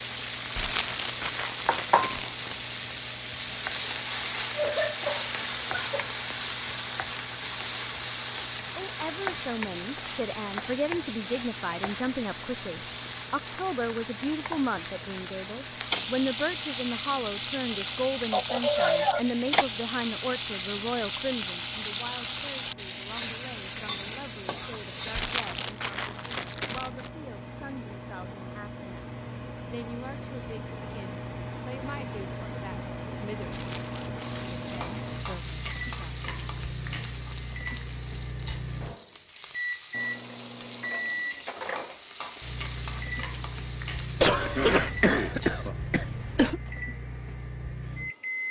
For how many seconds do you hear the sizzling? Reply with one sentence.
The sizzling can be heard for 37 seconds in total.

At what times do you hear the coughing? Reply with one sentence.
You can hear the coughing from 4.5 to 6.2 s, from 18.3 to 19.6 s and from 44.2 to 46.6 s.